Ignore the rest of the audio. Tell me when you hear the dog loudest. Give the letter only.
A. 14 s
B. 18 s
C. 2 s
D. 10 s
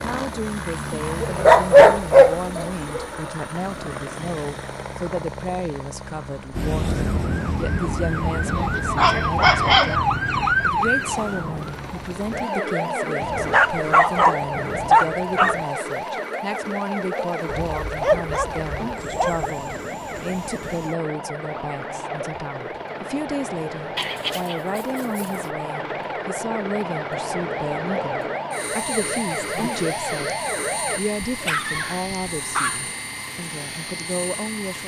C.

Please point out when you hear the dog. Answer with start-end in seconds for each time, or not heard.
1.2-3.0, 8.9-9.9, 13.2-15.6, 17.4-19.5, 23.9-25.4, 31.2-32.9.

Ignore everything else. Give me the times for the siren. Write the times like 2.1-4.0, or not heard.
6.5-31.0.